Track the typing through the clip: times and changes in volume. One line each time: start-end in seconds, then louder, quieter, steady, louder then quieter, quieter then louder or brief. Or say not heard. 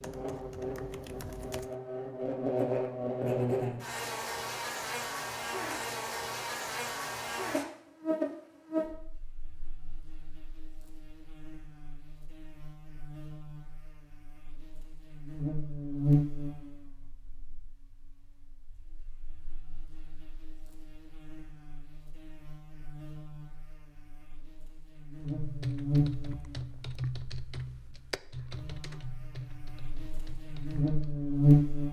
0.0-1.8 brief
25.3-31.1 quieter.